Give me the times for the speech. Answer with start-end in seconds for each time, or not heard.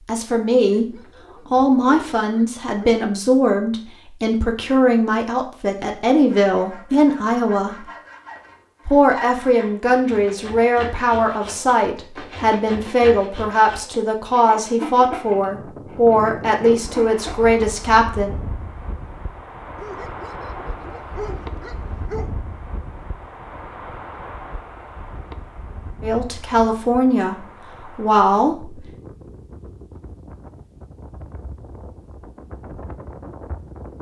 0.1-7.8, 8.8-18.4, 26.0-28.9.